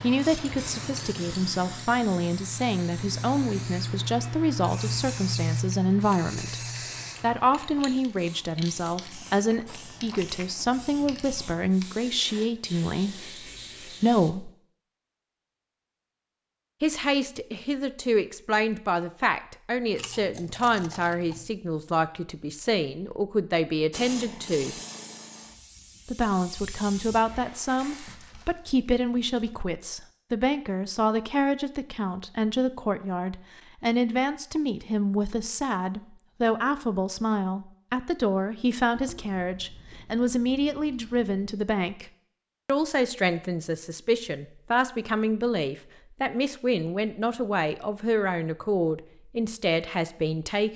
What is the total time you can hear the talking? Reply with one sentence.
You can hear the talking for 46 seconds altogether.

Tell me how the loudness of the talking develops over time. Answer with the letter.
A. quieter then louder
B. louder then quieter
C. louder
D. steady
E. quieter
D.